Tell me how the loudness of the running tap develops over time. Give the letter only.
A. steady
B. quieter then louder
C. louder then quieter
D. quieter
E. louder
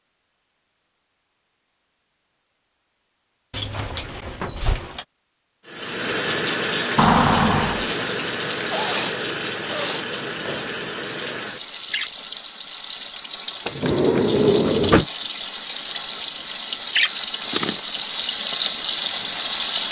B.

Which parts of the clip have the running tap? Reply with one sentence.
The running tap can be heard from 5.7 to 19.8 s.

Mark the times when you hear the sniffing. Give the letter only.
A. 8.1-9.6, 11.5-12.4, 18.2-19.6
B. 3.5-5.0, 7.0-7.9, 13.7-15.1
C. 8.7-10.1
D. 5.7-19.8
C.